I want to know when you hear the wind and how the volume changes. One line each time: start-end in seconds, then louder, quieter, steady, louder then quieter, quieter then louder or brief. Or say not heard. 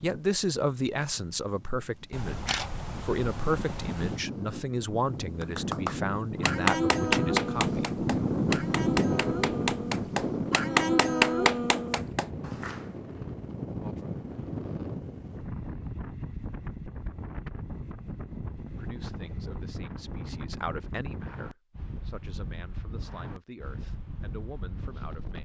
0.0-25.4 louder then quieter.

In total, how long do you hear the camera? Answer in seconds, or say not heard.
2 s.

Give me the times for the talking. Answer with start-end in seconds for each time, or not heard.
0.0-8.0, 18.8-25.4.